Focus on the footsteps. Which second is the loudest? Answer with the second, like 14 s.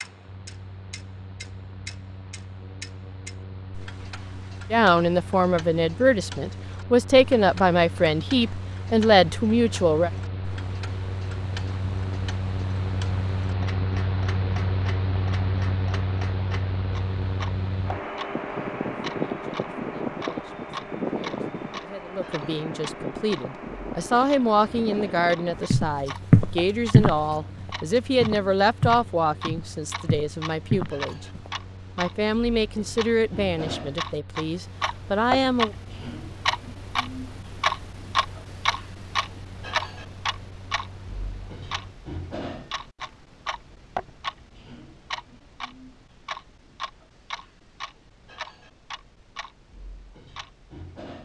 27 s.